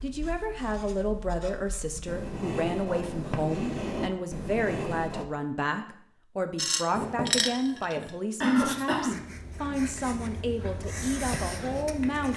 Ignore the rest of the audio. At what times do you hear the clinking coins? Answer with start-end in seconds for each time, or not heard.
6.5-8.0.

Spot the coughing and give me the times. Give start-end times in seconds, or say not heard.
8.4-9.2.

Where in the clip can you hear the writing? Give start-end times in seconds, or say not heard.
0.0-5.2, 6.9-12.3.